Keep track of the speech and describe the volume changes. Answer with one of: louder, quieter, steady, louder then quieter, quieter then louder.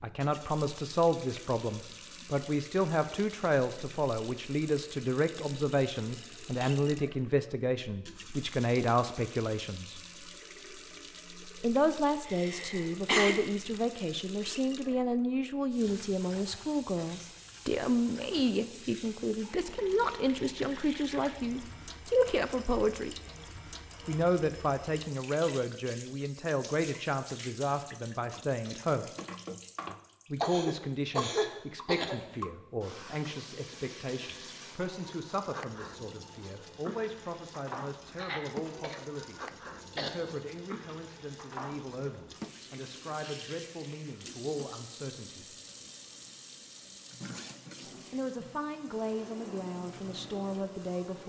quieter.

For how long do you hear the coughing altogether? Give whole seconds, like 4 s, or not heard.
5 s.